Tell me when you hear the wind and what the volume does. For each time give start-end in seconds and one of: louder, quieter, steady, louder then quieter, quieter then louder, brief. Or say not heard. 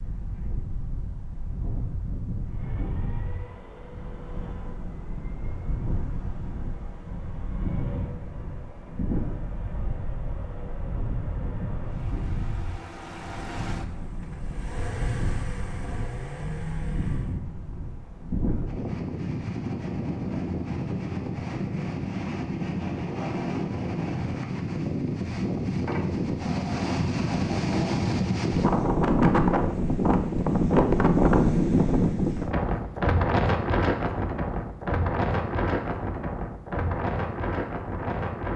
0.0-38.5 louder.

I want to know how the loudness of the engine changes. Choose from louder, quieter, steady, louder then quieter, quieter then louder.
louder.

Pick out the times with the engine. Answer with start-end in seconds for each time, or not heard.
2.4-17.4.